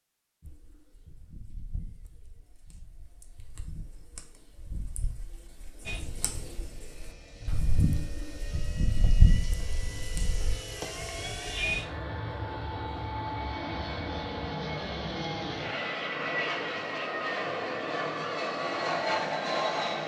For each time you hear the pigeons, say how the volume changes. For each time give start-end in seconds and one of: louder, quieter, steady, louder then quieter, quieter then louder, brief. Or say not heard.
0.4-10.6 louder.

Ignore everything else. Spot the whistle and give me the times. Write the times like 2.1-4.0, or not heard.
not heard.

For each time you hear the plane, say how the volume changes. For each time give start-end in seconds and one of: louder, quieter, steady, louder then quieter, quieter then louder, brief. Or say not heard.
5.8-20.0 louder.